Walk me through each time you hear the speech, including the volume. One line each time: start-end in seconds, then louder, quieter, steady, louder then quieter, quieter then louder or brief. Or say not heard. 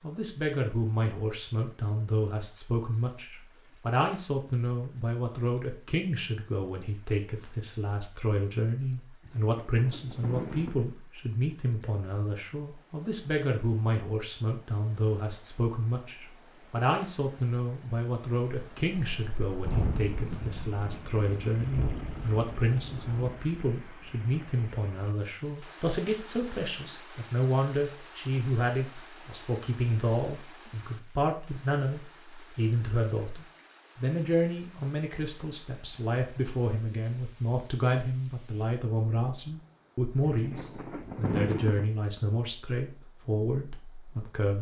0.0-44.5 steady.